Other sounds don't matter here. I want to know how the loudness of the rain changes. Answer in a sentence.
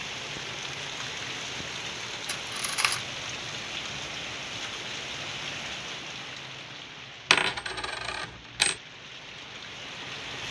The volume of the rain goes down.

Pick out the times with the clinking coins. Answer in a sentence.
You can hear the clinking coins from 2.2 to 3.0 s and from 7.3 to 8.8 s.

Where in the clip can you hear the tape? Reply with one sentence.
The tape can't be heard in this clip.